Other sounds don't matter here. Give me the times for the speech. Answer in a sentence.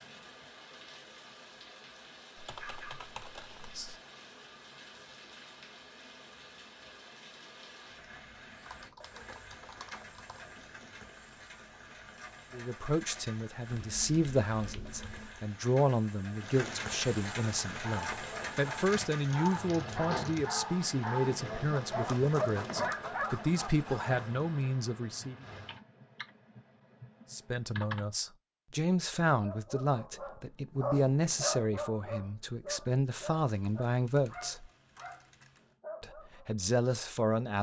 The speech can be heard from 12.5 to 25.4 s, from 27.3 to 34.7 s and from 36.0 to 37.5 s.